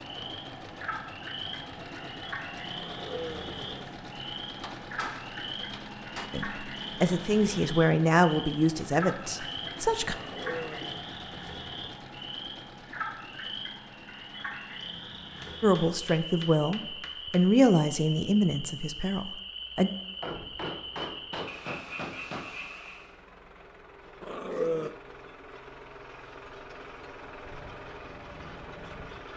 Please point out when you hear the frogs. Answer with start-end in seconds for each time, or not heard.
0.0-23.1.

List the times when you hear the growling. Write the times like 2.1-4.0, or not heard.
2.7-4.0, 10.1-11.1, 24.2-24.9.